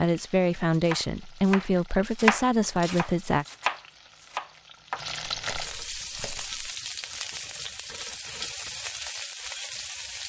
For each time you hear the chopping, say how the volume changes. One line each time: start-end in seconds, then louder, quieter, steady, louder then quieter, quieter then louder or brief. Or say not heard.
0.7-6.7 louder then quieter.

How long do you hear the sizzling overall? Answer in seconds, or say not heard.
10 s.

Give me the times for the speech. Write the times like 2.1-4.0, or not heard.
0.0-3.5.